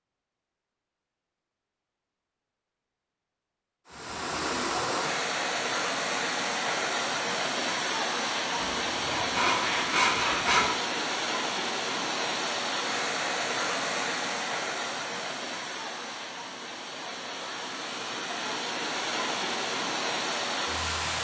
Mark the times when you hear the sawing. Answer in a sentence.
You can hear the sawing from 8.8 to 10.7 s.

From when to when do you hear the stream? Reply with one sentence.
The stream can be heard from 3.9 to 21.1 s.